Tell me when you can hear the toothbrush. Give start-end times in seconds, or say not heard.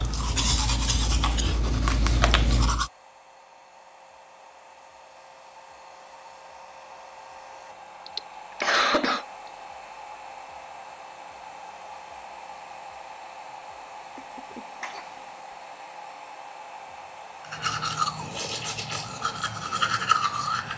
0.0-2.9, 17.4-20.7.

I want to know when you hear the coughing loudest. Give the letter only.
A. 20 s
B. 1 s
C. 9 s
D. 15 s
C.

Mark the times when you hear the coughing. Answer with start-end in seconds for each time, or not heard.
0.3-1.6, 8.1-9.2, 14.2-15.2.